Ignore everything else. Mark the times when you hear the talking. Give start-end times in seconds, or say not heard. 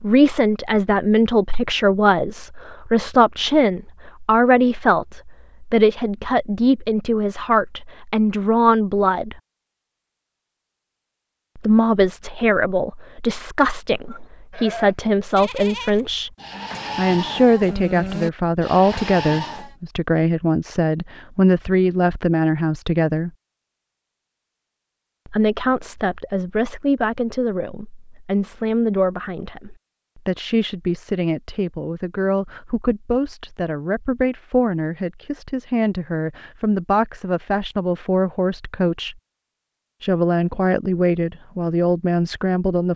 0.0-9.4, 11.6-16.3, 16.9-23.3, 25.2-39.1, 40.0-42.9.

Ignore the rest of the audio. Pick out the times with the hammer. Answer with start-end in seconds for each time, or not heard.
not heard.